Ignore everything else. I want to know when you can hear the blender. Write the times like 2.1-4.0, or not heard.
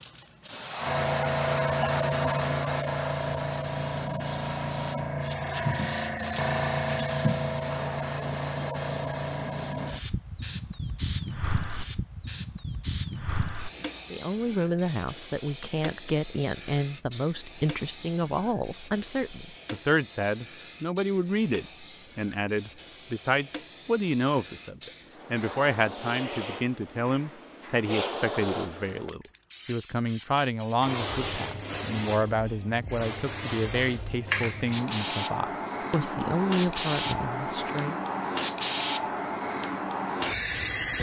not heard.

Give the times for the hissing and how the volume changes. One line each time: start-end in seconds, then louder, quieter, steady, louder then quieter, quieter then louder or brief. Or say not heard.
0.0-40.9 quieter then louder.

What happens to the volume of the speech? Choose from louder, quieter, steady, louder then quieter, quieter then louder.
steady.